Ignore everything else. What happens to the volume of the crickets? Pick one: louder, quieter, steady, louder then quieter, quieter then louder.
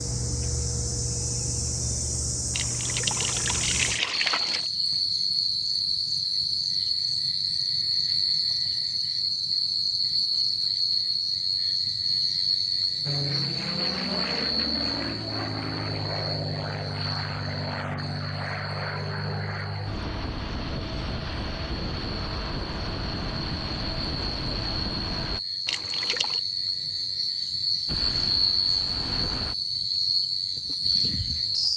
quieter then louder.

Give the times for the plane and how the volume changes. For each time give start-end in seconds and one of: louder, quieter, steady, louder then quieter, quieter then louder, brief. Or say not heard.
13.1-25.4 steady
27.9-29.6 brief.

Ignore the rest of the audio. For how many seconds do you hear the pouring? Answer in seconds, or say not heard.
3 s.